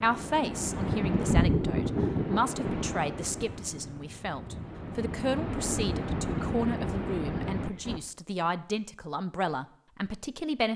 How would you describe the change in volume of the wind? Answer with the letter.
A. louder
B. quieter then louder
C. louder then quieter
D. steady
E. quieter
B.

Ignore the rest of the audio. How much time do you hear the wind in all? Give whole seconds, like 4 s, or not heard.
8 s.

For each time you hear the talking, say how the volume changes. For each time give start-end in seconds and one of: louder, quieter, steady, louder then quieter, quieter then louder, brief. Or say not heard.
0.0-10.7 steady.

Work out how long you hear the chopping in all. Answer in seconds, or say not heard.
not heard.